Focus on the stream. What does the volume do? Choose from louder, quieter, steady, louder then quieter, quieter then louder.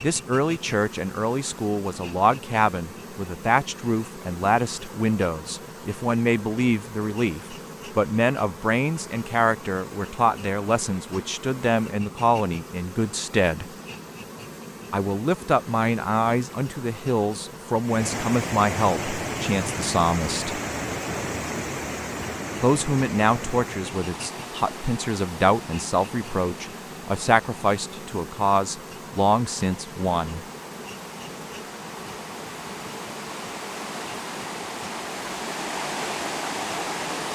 quieter then louder.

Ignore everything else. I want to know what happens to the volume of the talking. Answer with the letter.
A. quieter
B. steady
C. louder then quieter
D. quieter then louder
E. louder
B.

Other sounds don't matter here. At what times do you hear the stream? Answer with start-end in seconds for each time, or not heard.
17.8-37.3.